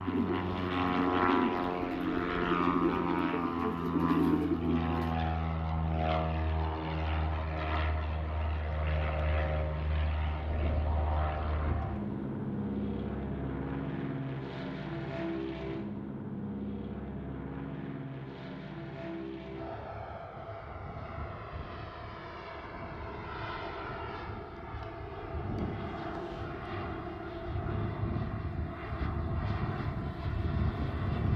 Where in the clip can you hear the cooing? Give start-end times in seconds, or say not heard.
0.0-5.2.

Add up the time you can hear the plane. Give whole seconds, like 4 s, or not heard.
31 s.